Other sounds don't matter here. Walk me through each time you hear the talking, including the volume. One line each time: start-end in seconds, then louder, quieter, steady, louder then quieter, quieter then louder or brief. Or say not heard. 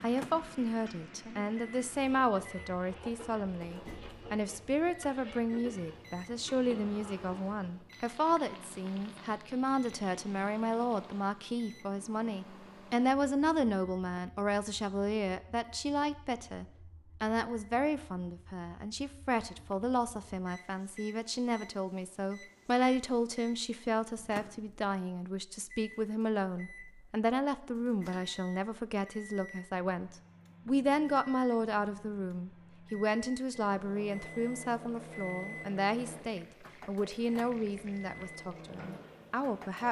0.0-39.8 steady.